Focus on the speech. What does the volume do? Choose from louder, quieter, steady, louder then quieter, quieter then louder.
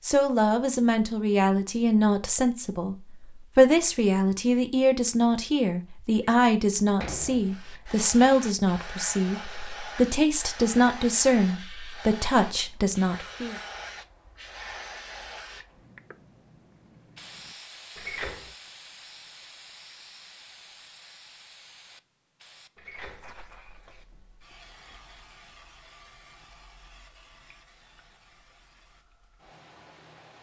steady.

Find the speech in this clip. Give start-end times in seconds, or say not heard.
0.0-13.6.